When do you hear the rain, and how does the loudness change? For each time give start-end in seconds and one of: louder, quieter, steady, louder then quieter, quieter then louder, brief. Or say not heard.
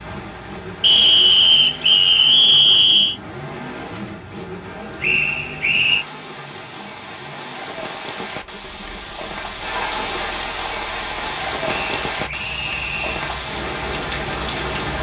0.0-14.9 louder.